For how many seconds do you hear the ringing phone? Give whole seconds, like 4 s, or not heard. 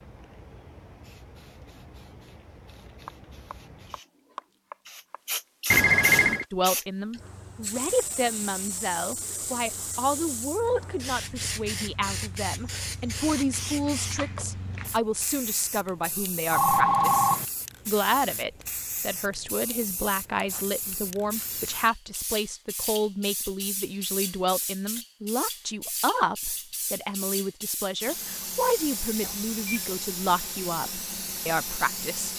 2 s.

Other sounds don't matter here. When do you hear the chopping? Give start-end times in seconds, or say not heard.
3.0-5.2.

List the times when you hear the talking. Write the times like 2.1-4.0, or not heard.
6.5-32.3.